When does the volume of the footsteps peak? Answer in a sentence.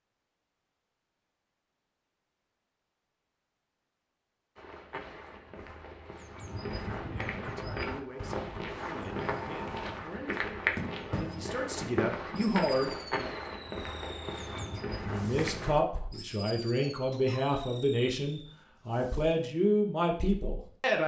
The loudest moment of the footsteps is at 11 seconds.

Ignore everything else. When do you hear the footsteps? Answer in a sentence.
You can hear the footsteps from 4.5 to 15.8 s.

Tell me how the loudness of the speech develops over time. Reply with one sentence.
The volume of the speech goes up.